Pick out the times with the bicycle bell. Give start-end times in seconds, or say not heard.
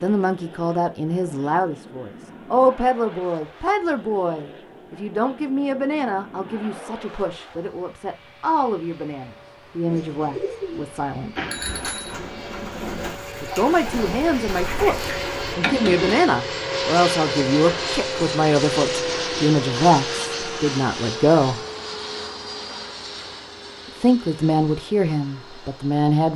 11.3-12.2.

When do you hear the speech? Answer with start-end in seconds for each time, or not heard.
0.0-11.3, 13.4-21.6, 24.0-26.3.